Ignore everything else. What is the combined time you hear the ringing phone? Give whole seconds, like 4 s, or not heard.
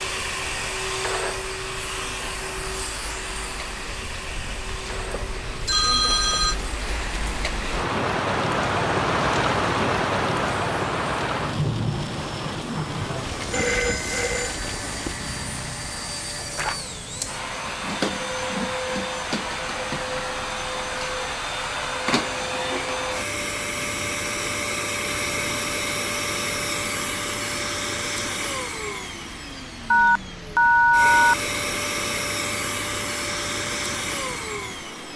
4 s.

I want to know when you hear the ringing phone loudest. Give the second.
31 s.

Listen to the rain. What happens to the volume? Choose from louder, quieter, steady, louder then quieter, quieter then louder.
louder then quieter.